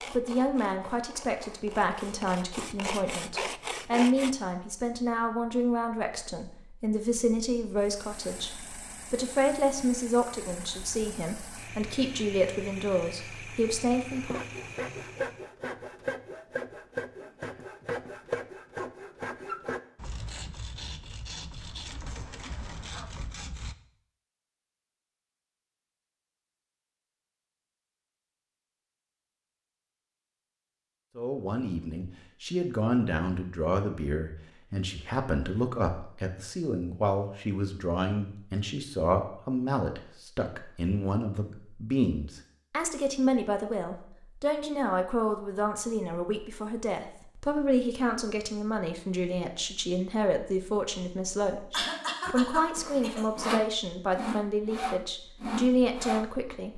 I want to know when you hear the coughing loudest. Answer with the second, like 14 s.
52 s.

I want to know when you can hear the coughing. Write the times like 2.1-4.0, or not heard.
51.7-53.2.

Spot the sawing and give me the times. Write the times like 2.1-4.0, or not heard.
0.0-4.3, 14.1-23.8, 52.2-56.7.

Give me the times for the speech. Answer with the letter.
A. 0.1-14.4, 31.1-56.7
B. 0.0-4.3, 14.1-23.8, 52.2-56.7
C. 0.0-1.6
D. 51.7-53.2
A.